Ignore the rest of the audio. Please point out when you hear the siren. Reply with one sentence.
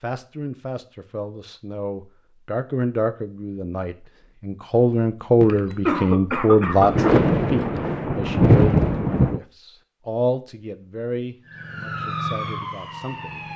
You can hear the siren from 11.4 to 13.5 s.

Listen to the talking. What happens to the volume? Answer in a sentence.
The loudness of the talking goes up, then down.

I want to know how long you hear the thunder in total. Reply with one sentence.
The thunder can be heard for 3 seconds in total.